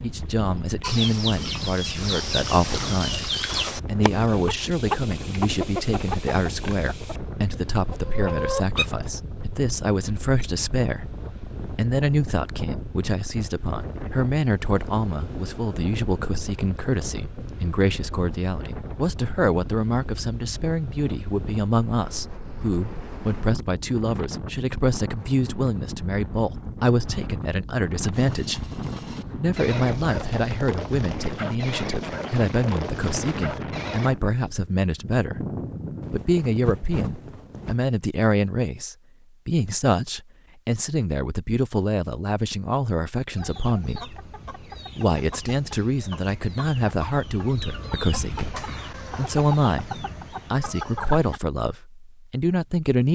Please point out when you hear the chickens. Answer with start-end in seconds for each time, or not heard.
0.8-8.8, 43.4-51.4.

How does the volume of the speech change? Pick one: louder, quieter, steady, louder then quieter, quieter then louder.
steady.